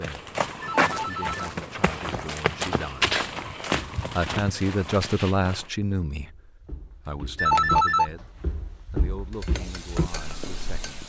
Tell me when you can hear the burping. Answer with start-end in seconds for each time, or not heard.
not heard.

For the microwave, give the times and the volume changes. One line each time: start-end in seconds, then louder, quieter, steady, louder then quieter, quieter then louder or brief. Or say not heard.
not heard.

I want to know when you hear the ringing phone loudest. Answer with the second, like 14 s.
8 s.